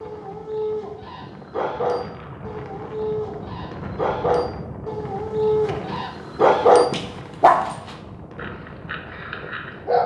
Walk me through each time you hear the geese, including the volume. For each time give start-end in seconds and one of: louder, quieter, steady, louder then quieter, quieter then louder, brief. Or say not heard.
not heard.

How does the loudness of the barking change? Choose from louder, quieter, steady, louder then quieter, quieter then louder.
louder then quieter.